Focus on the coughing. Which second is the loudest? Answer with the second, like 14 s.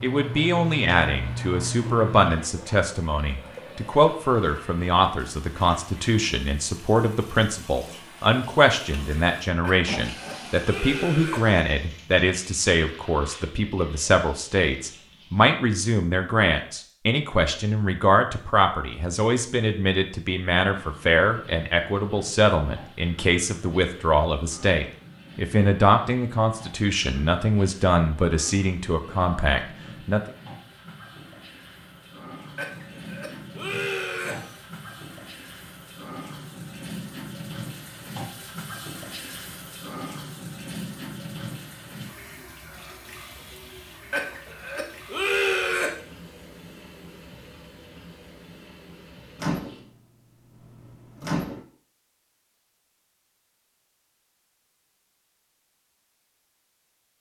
45 s.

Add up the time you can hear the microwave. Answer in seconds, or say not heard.
5 s.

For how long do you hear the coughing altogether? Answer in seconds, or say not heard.
6 s.